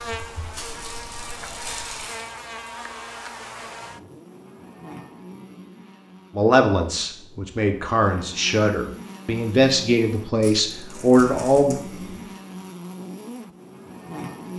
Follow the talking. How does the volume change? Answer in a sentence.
The loudness of the talking goes up.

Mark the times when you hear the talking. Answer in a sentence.
The talking can be heard from 6.3 to 11.8 s.